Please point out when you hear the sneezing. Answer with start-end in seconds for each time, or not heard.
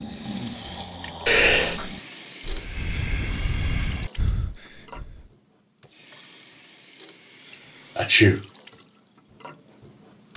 1.2-1.9, 8.0-8.4.